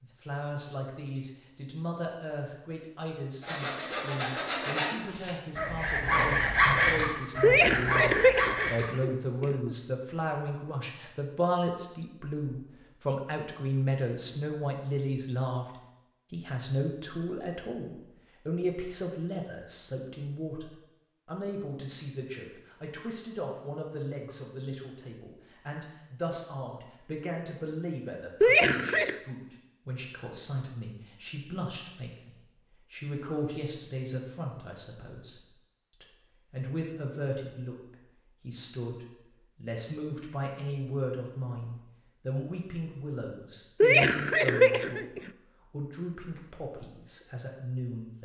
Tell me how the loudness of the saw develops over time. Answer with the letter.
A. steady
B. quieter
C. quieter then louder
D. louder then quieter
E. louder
D.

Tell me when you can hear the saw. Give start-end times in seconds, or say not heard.
3.4-8.8.